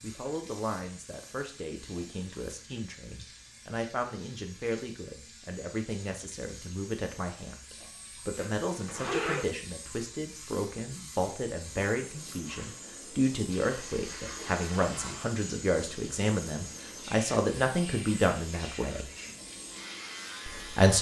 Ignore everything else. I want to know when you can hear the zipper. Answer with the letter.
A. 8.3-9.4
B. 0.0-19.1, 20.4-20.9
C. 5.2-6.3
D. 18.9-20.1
A.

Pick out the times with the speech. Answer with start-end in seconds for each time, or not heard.
0.0-19.1, 20.4-20.9.